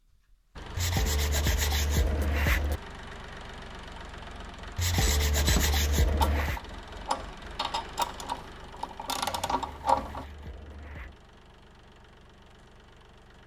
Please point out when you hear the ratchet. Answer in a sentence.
You can hear the ratchet from 4.9 to 10.2 s.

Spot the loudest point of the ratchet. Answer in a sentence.
The loudest moment of the ratchet is at 10 seconds.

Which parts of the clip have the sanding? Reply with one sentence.
The sanding can be heard from 0.8 to 2.8 s, from 4.8 to 6.6 s and from 9.5 to 11.2 s.